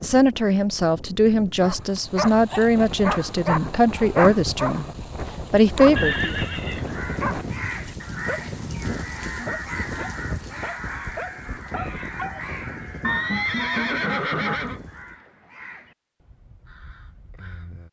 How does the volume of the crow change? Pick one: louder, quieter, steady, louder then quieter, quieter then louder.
quieter.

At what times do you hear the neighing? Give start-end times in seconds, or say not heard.
6.0-7.0, 13.0-14.8.